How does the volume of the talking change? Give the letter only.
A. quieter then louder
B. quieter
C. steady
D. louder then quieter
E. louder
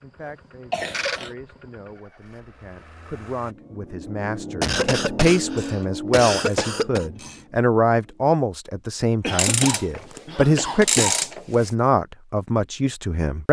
E.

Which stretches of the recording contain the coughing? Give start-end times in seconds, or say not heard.
0.2-1.4, 4.6-7.0, 9.2-11.2.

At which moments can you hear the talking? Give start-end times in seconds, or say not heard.
0.0-13.4.